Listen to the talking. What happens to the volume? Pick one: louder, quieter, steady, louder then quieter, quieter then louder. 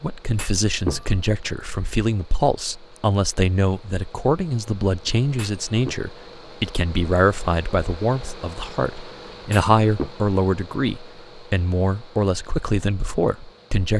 steady.